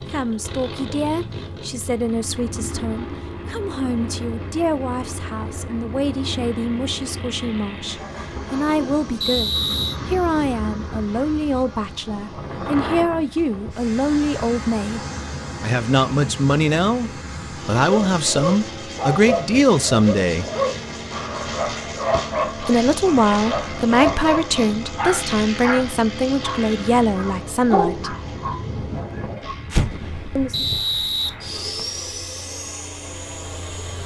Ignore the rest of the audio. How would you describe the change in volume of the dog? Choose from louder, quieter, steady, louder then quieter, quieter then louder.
steady.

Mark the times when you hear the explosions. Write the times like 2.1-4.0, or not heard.
29.7-30.5.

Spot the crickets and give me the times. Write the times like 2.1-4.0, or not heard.
not heard.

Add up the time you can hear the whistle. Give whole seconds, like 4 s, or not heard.
2 s.